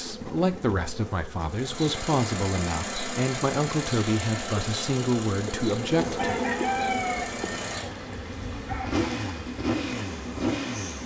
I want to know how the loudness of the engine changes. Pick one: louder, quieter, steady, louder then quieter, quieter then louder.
quieter then louder.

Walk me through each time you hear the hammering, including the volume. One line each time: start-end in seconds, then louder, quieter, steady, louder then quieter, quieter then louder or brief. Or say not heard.
not heard.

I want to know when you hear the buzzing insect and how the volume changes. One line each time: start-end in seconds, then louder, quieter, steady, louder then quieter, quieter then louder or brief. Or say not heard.
0.0-11.0 louder then quieter.